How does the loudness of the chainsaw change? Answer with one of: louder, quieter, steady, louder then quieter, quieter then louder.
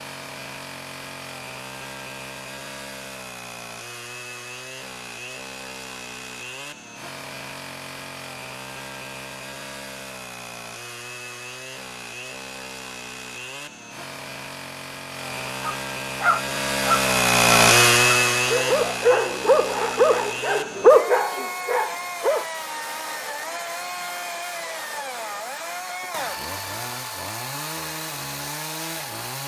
louder then quieter.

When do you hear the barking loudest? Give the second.
21 s.